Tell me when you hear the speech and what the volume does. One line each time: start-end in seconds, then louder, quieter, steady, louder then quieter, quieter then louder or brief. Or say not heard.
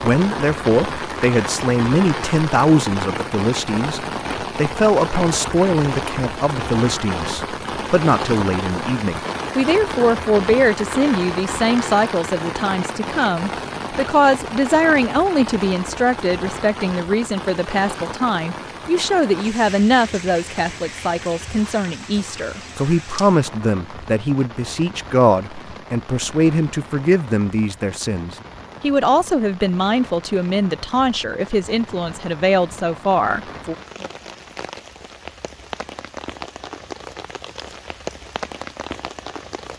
0.0-33.8 steady.